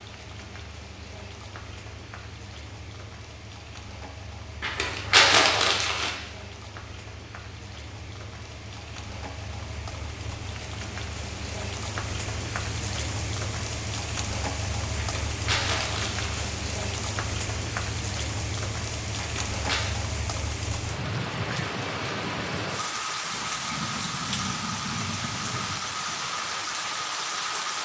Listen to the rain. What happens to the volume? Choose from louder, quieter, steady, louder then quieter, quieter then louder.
louder.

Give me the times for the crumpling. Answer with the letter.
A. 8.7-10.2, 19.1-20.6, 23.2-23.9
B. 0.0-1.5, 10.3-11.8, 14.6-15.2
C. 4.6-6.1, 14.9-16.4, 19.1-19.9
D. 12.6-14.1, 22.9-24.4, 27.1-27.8
C.